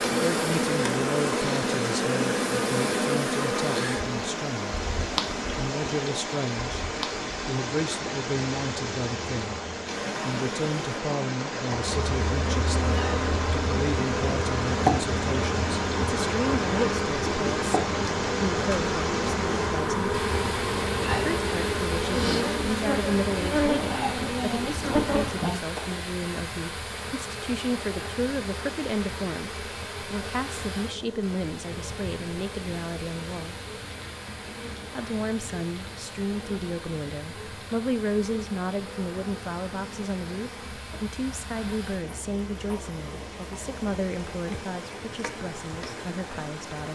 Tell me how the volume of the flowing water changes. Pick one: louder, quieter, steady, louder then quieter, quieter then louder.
quieter.